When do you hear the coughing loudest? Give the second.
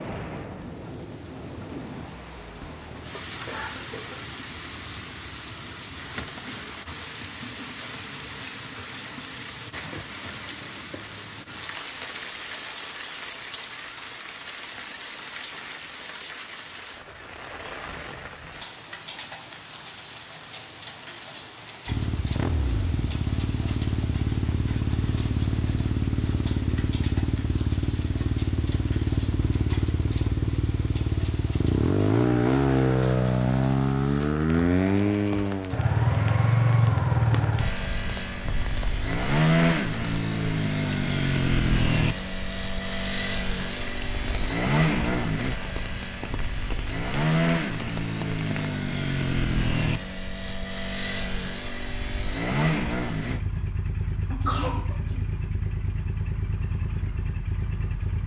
55 s.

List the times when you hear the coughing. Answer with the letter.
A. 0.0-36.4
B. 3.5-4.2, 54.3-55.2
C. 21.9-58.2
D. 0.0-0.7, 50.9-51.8
B.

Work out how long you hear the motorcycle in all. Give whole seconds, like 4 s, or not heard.
36 s.